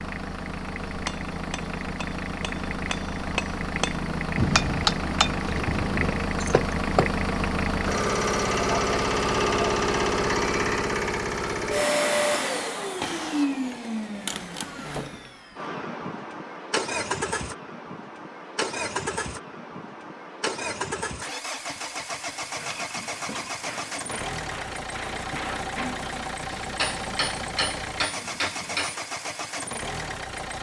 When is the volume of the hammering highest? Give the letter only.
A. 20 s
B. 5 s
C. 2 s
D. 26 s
B.